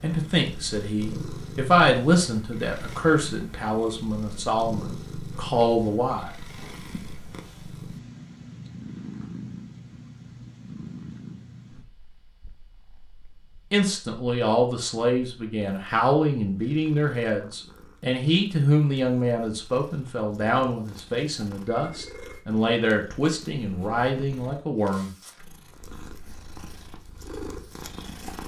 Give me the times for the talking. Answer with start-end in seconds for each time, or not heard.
0.0-6.3, 13.7-25.1.